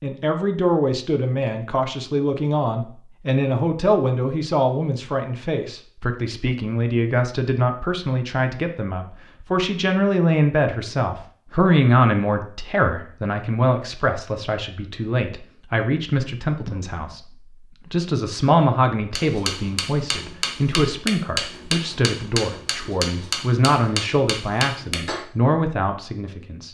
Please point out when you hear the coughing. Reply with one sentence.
You can hear the coughing from 16.6 to 17.2 s.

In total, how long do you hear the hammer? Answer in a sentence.
You can hear the hammer for 6 seconds altogether.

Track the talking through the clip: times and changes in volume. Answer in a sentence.
The talking can be heard from 0.0 to 26.6 s, at a steady volume.